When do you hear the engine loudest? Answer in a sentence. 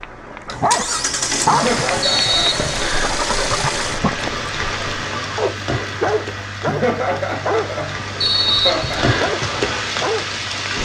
The loudest moment of the engine is at 1 second.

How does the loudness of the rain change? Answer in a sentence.
The loudness of the rain goes down, then up.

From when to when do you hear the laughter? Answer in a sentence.
You can hear the laughter from 1.4 to 2.8 s and from 6.7 to 9.2 s.